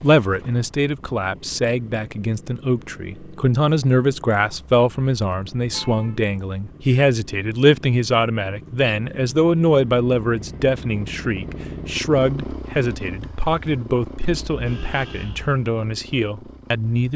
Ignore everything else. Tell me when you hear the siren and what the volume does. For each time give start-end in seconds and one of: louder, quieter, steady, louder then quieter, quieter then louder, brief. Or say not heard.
not heard.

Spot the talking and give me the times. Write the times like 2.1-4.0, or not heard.
0.0-17.1.